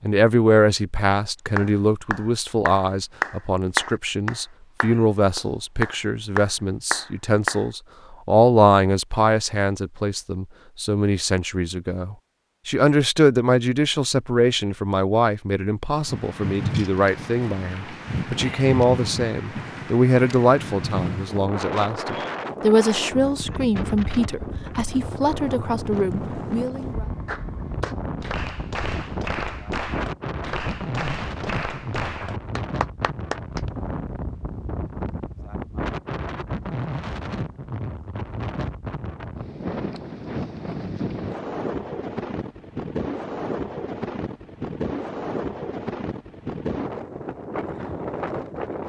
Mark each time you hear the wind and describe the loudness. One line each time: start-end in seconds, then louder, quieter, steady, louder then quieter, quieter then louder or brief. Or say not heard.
15.9-48.8 steady.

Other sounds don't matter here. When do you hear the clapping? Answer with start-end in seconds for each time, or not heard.
1.6-7.7, 27.2-33.6.